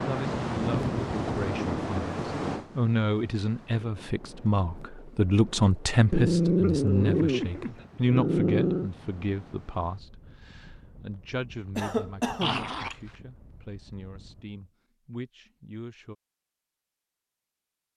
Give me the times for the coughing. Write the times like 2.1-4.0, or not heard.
11.8-12.7.